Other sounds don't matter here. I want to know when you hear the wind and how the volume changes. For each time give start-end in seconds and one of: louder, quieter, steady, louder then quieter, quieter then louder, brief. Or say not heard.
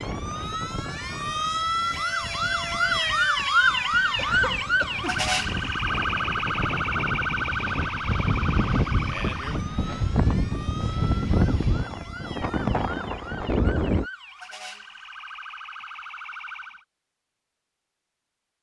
0.0-14.1 louder.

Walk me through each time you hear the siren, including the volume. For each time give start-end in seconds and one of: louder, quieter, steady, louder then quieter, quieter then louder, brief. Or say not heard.
0.0-16.9 quieter.